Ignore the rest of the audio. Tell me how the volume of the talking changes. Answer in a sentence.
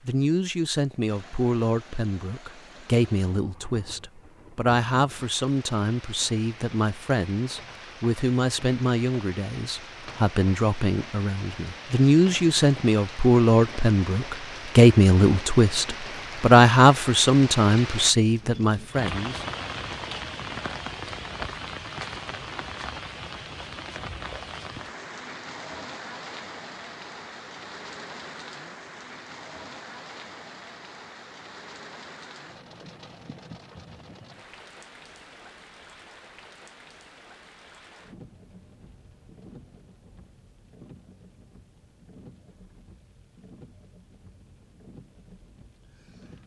The loudness of the talking goes up.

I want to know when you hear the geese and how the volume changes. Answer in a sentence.
You can't hear the geese here.